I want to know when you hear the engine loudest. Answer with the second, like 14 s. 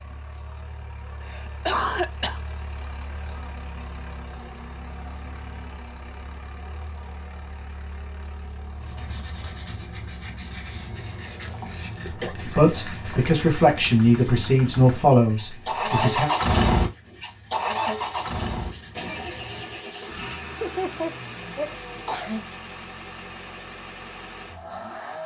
16 s.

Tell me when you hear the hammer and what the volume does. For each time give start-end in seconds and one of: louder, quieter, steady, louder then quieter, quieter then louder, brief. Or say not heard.
not heard.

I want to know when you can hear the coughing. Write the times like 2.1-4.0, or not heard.
1.2-2.4, 11.2-12.3, 20.6-22.4.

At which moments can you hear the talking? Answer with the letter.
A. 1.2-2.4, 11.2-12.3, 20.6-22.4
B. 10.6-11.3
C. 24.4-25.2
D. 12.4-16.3
D.